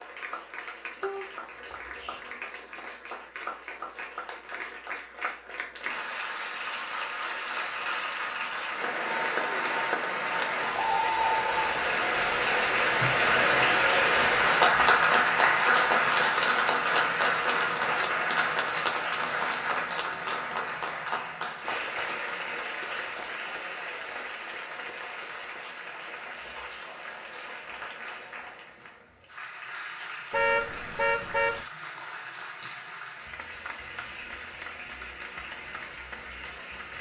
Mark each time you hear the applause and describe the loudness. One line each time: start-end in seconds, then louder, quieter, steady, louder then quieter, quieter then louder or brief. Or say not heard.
0.0-36.9 louder then quieter.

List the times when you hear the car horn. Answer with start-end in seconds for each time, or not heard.
1.0-2.2, 30.3-31.6.